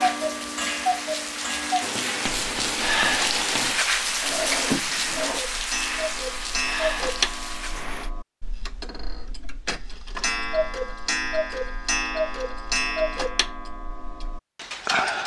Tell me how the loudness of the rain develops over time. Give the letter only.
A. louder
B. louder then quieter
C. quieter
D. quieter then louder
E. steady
B.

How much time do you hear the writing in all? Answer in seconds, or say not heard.
2 s.